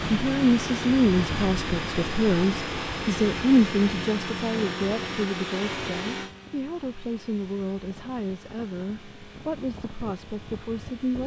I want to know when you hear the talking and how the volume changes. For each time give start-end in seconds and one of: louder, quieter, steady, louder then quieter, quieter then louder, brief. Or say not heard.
0.0-11.2 quieter.